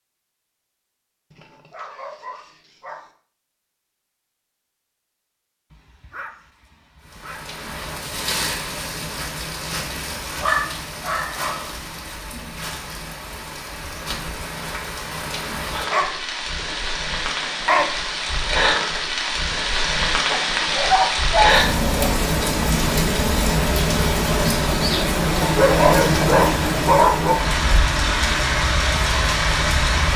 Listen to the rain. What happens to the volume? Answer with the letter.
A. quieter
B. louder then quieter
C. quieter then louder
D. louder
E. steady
D.